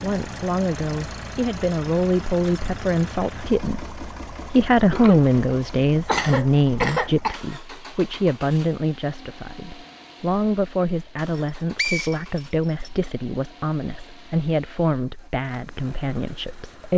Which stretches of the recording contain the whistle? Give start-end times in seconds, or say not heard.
11.2-12.9.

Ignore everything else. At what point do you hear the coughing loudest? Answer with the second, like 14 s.
7 s.